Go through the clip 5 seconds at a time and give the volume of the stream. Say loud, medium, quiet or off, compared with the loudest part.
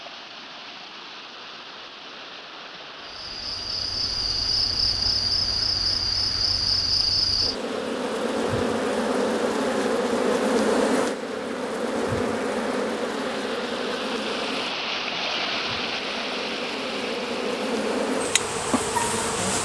medium, medium, loud, loud.